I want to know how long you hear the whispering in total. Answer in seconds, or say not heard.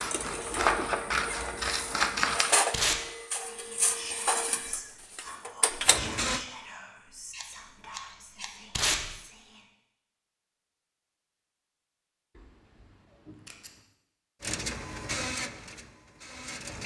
6 s.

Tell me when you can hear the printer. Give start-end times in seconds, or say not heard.
0.0-6.5, 14.4-16.8.